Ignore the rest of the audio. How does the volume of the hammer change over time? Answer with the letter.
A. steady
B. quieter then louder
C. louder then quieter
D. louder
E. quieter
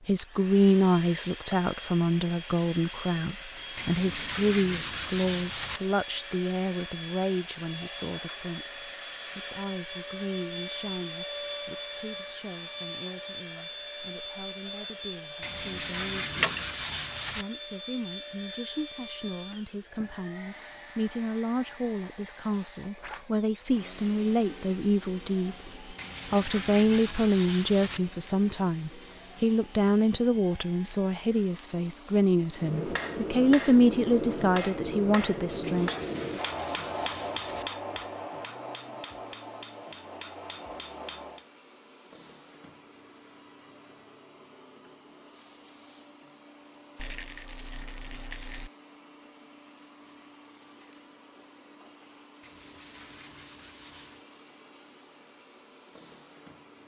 E.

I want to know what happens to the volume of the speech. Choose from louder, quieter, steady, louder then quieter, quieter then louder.
quieter then louder.